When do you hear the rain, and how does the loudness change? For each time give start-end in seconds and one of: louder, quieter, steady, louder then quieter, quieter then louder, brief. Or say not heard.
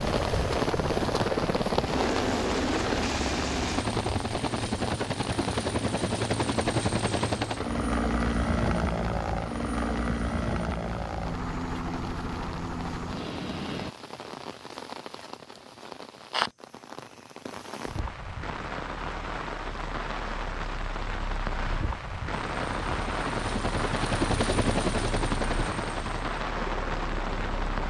0.0-27.8 quieter then louder.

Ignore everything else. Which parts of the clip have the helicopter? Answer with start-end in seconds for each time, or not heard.
0.0-13.9, 22.5-27.8.